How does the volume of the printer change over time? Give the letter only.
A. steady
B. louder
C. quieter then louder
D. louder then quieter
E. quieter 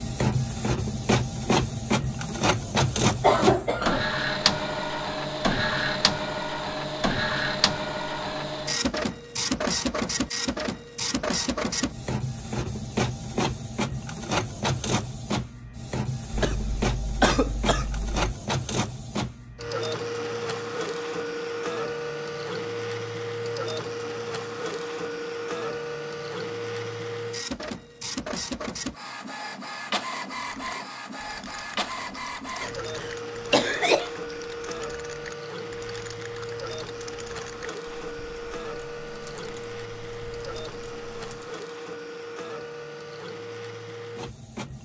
E.